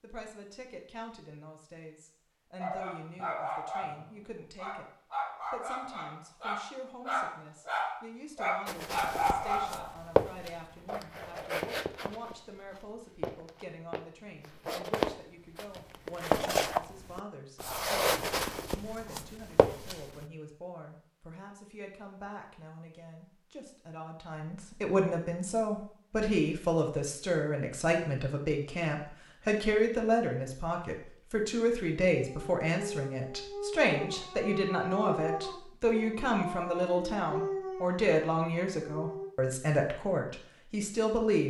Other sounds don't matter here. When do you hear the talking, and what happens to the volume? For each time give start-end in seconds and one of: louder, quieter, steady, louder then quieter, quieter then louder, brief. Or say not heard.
0.0-41.4 louder.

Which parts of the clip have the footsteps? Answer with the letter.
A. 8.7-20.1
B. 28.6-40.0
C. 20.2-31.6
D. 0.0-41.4
A.